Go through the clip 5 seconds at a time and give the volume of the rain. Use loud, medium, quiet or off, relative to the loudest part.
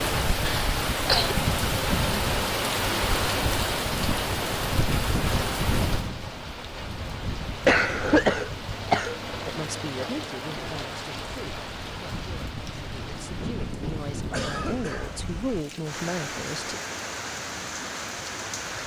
loud, medium, medium, medium.